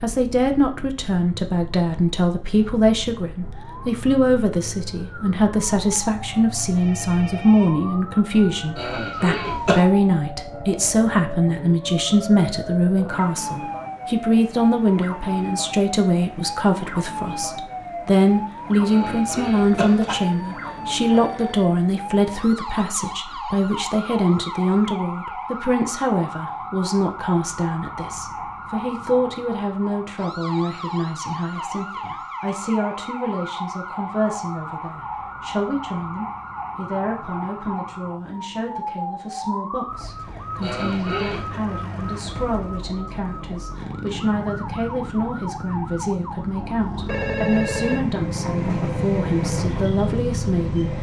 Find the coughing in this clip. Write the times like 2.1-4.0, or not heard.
8.8-9.8, 18.9-20.2, 40.6-41.6.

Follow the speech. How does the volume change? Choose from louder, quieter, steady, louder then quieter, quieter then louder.
quieter.